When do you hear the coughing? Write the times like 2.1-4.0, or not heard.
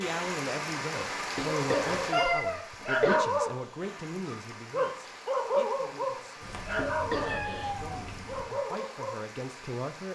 1.2-3.2, 6.6-7.8.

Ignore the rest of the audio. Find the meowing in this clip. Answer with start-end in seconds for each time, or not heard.
2.1-2.6, 6.4-8.4.